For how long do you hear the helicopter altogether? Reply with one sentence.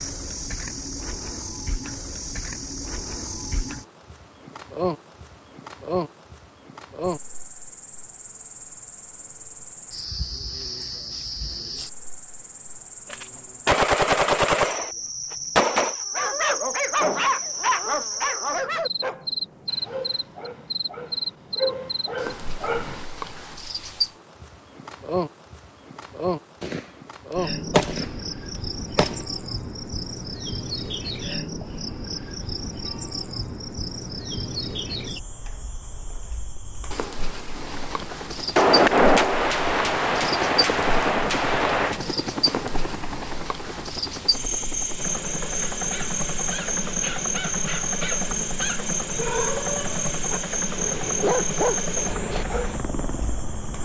The helicopter can be heard for 16 seconds in total.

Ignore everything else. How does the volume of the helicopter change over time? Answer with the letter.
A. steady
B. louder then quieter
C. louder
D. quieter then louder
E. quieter
A.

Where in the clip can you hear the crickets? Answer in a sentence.
You can hear the crickets from 0.0 to 53.8 s.